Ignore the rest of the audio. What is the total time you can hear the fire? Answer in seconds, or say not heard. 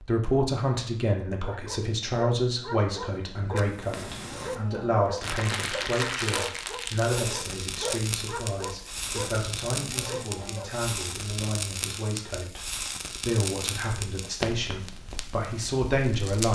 13 s.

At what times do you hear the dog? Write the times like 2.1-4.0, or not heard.
1.4-10.8.